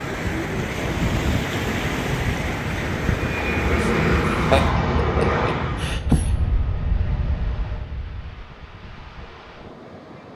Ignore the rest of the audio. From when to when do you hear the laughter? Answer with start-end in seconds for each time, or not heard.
3.8-6.3.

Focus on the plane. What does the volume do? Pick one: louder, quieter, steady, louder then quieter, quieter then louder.
quieter.